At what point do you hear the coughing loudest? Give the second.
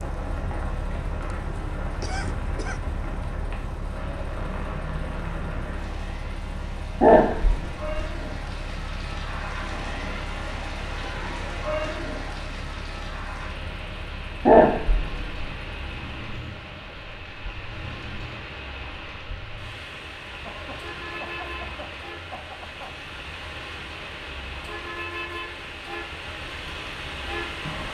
2 s.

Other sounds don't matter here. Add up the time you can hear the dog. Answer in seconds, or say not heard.
2 s.